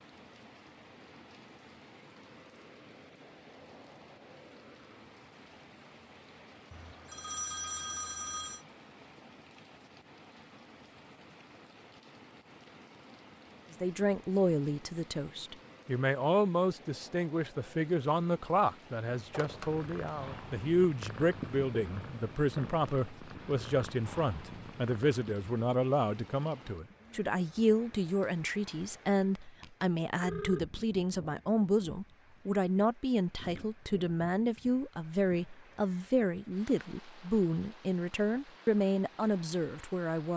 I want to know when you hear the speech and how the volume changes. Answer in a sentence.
You can hear the speech from 13.7 to 40.3 s, at a steady volume.